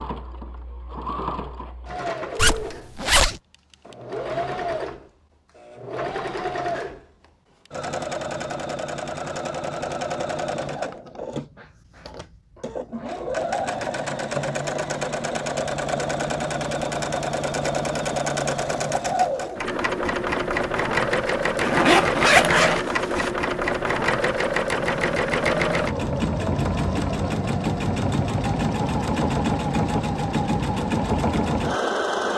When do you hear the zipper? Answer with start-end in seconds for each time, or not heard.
2.4-3.4, 21.6-23.3.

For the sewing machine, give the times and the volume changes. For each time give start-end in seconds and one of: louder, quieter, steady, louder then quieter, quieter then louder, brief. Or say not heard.
0.0-32.3 louder.